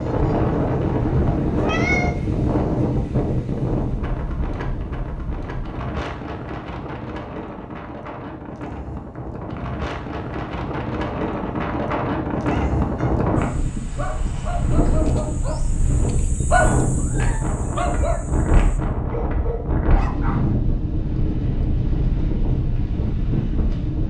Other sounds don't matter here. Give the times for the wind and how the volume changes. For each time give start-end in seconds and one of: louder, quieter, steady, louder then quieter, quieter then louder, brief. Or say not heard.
0.0-24.0 quieter then louder.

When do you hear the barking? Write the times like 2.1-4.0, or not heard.
13.3-20.4.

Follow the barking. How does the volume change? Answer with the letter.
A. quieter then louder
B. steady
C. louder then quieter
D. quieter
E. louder
C.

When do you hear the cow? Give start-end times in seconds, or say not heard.
not heard.